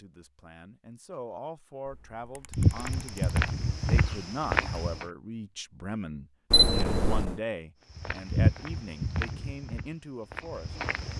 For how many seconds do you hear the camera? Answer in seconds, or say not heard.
2 s.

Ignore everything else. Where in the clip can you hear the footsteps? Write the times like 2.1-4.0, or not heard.
2.5-5.0, 7.9-11.1.